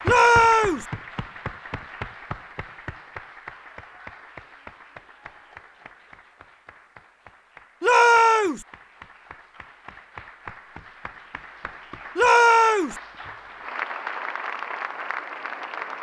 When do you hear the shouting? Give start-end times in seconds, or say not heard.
0.1-0.8, 7.8-8.7, 12.2-12.9.